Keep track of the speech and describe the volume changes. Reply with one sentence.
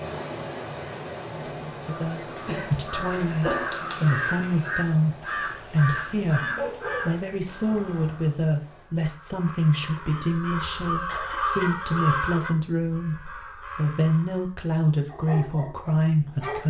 The volume of the speech stays about the same.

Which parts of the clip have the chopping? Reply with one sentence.
You can't hear the chopping here.